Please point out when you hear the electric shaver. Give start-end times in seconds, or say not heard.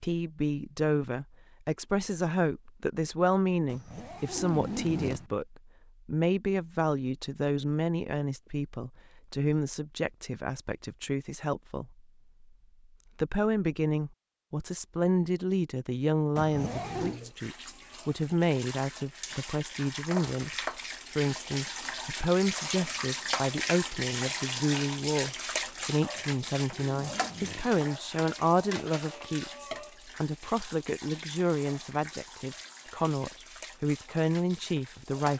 not heard.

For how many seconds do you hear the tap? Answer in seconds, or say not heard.
19 s.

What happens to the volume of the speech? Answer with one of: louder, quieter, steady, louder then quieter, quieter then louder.
steady.